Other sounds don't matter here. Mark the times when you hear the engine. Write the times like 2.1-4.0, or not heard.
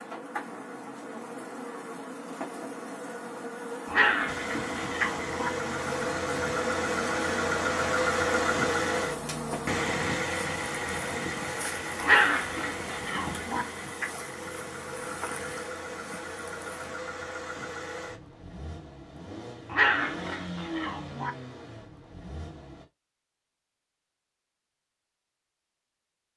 4.2-22.9.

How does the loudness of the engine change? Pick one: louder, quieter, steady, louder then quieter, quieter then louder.
quieter.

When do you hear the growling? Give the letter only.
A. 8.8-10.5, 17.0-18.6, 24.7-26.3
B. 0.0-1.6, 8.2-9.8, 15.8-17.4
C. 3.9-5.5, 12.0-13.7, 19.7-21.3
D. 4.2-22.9
C.